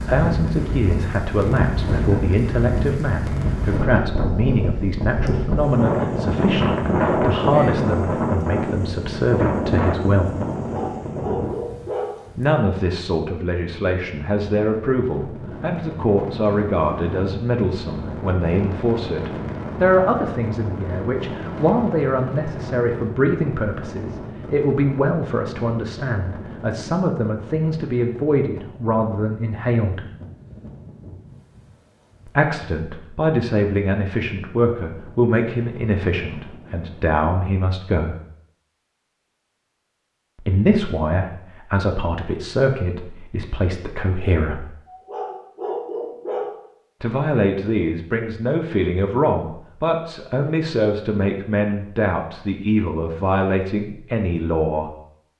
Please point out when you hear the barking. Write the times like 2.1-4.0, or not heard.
10.6-12.2, 44.9-46.5.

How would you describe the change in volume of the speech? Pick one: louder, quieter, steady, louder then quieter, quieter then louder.
steady.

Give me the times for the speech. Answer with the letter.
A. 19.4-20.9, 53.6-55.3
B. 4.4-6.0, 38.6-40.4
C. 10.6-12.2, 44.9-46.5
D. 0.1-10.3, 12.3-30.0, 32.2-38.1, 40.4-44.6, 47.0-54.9
D.